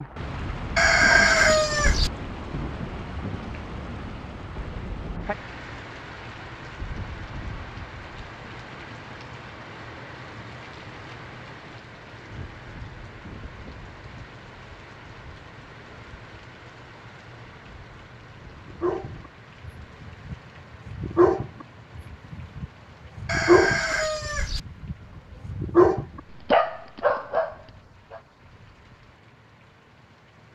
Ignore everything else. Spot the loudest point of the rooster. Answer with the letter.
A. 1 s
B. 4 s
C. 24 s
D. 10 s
A.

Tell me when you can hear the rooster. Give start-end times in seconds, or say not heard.
0.8-2.1, 23.2-24.6.